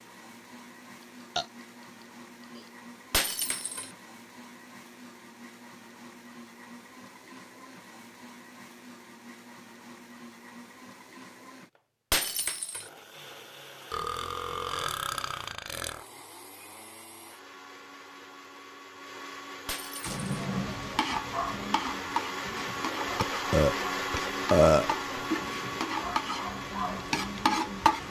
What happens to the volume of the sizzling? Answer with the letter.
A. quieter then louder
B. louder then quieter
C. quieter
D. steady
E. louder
A.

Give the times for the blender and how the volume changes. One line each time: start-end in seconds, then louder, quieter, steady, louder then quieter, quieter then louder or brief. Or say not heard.
0.0-28.0 louder.